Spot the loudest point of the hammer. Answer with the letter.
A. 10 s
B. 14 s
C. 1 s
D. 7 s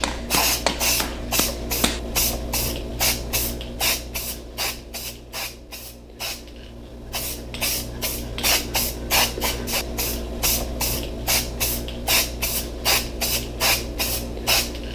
C.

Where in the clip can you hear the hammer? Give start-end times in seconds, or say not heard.
0.0-2.0.